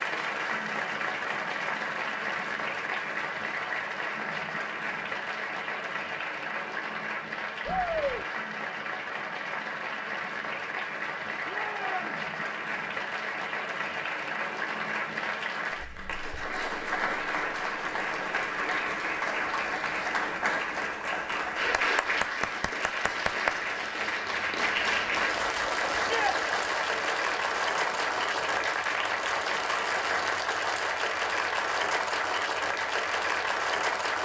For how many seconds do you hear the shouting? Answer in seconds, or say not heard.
2 s.